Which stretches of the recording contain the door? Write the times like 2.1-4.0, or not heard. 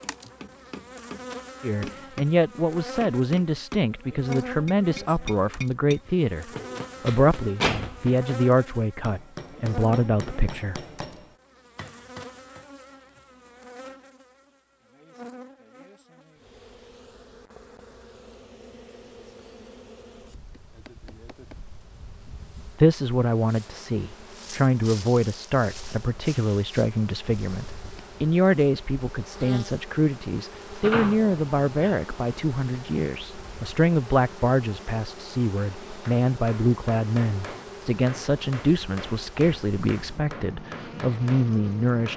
6.5-8.1, 30.8-32.0.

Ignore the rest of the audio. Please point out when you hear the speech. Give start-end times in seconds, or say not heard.
1.6-10.8, 22.8-42.1.